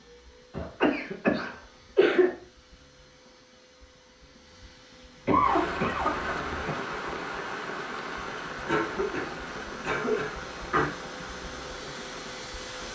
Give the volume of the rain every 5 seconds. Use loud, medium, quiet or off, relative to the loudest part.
off, loud, medium.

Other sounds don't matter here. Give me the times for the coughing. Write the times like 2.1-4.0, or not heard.
0.5-2.3, 5.2-6.8, 8.7-10.9.